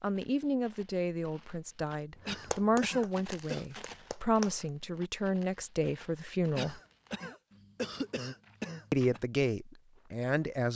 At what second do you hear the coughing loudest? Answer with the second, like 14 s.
8 s.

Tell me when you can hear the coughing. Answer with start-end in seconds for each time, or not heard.
2.2-3.6, 6.5-9.2.